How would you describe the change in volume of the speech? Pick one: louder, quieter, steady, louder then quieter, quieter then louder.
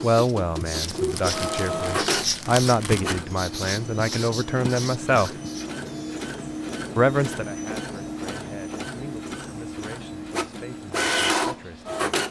quieter.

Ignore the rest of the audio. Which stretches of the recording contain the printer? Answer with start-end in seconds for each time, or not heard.
0.0-12.2.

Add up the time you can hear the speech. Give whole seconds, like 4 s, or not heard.
10 s.